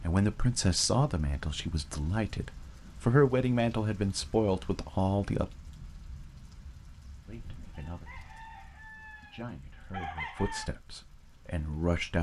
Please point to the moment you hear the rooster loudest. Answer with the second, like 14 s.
10 s.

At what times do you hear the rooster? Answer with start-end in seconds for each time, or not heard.
7.2-10.7.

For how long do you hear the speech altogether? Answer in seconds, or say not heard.
9 s.